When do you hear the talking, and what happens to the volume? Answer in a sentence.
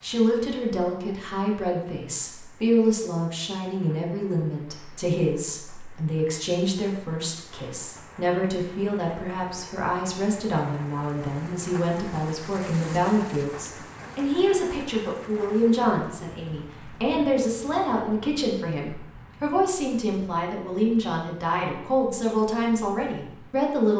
You can hear the talking from 0.0 to 23.9 s, at a steady volume.